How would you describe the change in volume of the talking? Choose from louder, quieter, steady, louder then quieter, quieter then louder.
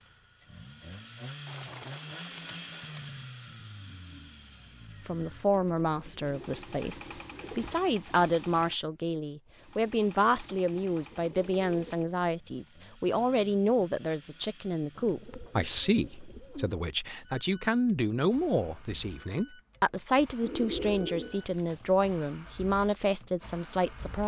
steady.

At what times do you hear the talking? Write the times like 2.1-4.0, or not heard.
5.0-24.2.